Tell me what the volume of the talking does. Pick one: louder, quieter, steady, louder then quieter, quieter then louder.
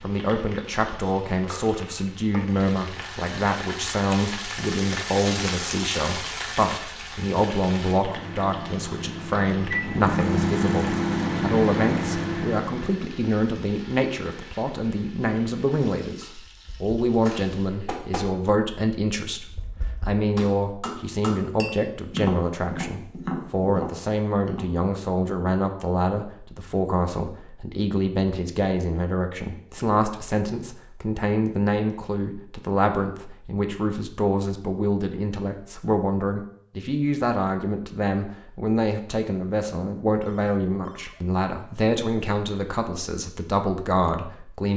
steady.